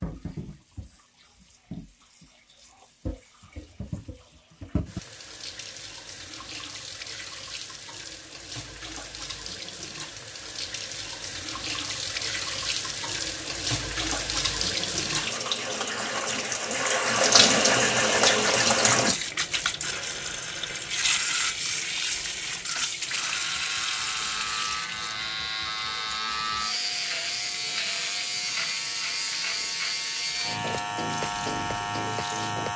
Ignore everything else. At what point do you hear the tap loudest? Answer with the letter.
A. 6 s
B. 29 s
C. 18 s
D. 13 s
C.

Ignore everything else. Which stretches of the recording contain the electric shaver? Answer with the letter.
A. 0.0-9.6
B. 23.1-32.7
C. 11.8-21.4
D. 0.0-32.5
B.